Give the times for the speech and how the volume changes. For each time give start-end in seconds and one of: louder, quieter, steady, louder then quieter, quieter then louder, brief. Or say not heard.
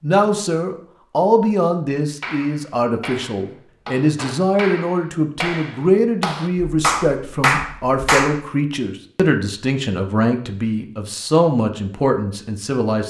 0.0-13.0 steady.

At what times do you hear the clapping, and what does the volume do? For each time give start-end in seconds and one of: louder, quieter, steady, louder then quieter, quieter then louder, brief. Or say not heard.
2.2-8.4 louder.